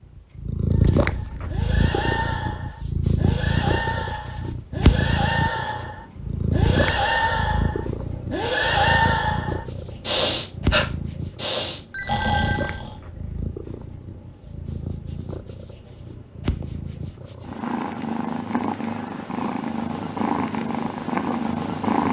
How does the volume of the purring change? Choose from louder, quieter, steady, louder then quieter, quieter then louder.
quieter then louder.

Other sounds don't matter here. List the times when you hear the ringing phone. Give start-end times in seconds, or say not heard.
11.9-12.8.